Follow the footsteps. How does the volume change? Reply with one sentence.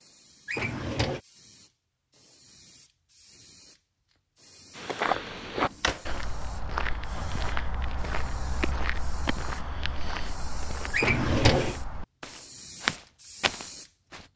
The volume of the footsteps goes down, then up.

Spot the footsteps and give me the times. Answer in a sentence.
The footsteps can be heard from 4.8 to 14.3 s.